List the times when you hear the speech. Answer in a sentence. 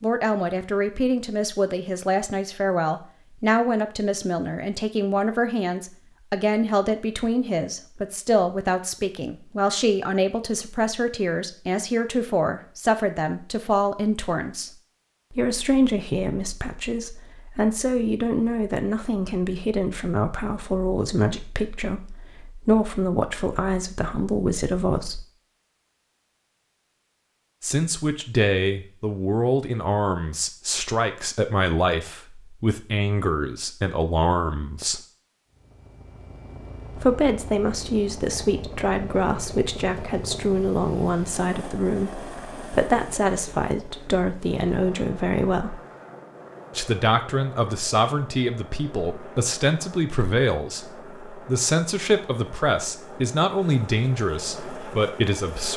The speech can be heard from 0.0 to 14.7 s, from 15.3 to 25.2 s, from 27.6 to 35.0 s, from 37.0 to 45.8 s and from 46.8 to 55.7 s.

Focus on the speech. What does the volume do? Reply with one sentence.
The volume of the speech stays about the same.